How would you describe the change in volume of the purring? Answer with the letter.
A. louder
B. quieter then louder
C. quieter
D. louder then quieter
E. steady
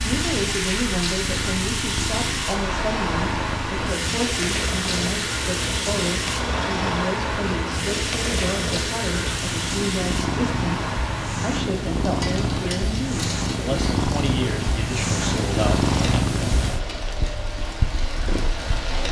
A.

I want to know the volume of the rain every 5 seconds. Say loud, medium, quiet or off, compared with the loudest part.
loud, loud, medium, medium.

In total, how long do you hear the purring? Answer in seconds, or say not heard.
19 s.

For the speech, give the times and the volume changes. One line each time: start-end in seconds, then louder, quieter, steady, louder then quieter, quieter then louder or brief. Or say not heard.
0.0-15.8 steady.